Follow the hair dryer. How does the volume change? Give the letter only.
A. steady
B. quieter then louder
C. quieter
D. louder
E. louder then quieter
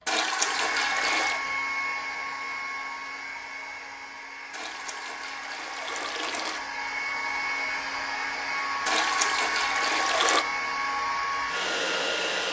B.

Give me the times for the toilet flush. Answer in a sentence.
You can hear the toilet flush from 0.1 to 1.4 s, from 4.5 to 6.7 s and from 8.8 to 10.4 s.